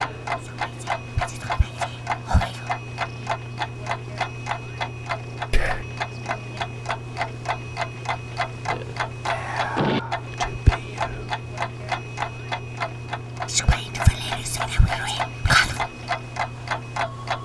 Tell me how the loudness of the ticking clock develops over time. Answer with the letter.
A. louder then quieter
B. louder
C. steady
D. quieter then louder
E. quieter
C.